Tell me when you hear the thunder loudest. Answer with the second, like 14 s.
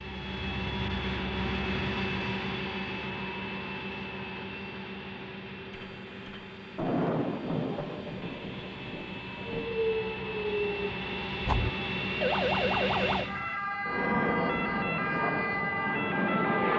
7 s.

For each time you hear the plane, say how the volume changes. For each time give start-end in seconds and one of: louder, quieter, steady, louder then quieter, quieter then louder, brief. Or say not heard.
0.0-16.7 quieter then louder.